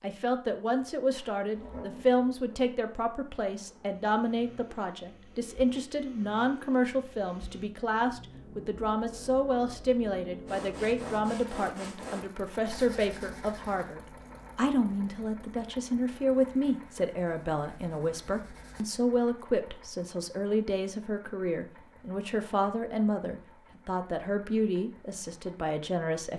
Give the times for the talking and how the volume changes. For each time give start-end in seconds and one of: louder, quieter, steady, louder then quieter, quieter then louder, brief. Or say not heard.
0.0-26.3 steady.